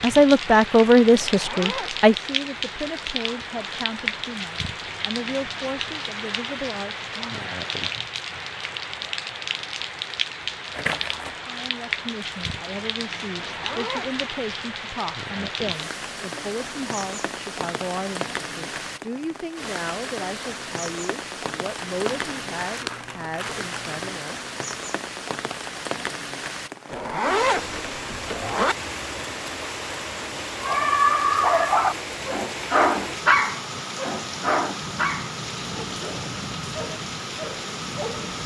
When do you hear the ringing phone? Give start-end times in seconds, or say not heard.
not heard.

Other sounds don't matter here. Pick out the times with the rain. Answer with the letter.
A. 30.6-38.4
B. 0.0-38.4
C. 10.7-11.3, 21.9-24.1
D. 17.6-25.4
B.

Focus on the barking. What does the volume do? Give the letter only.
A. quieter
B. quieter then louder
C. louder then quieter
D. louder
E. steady
A.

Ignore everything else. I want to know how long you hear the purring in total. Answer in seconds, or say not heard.
not heard.